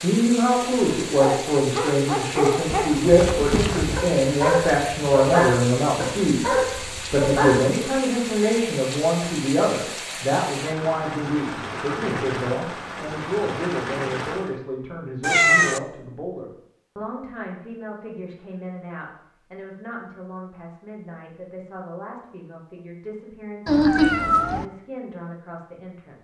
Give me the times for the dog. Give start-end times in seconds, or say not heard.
0.6-7.7.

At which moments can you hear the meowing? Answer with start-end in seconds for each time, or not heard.
2.7-4.0, 15.2-15.8, 23.6-24.6.